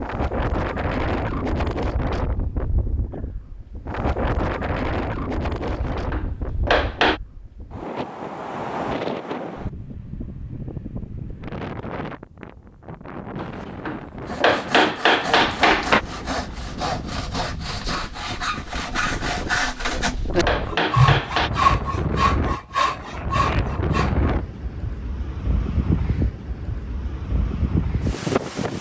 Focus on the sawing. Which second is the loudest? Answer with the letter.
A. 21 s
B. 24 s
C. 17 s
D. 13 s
A.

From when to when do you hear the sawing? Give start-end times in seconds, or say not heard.
14.2-24.3.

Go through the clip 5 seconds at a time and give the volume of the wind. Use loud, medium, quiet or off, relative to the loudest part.
loud, loud, medium, medium, loud, loud.